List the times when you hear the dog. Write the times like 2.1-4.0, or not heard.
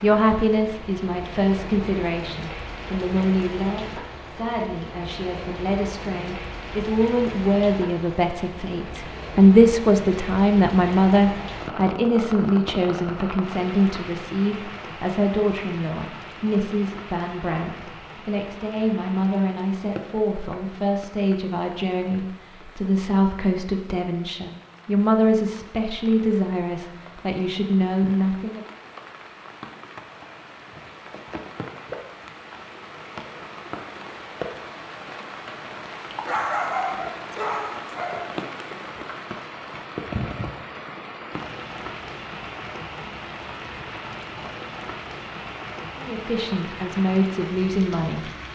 35.9-38.4.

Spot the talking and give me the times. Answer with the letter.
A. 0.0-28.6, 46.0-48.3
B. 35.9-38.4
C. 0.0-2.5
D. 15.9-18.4
A.